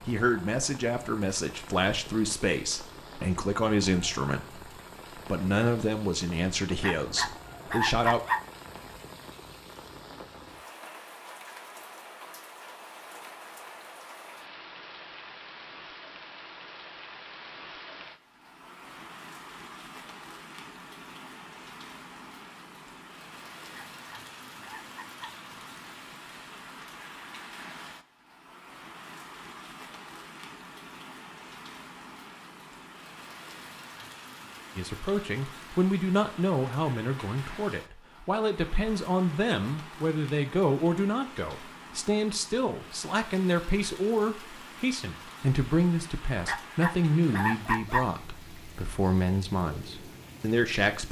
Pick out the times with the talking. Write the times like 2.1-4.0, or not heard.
0.0-8.2, 34.8-51.0.